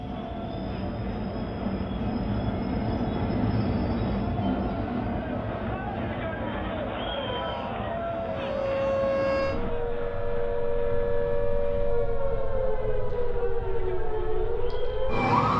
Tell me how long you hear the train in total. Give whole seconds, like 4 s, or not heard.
10 s.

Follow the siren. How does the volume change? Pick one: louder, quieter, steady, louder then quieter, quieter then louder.
steady.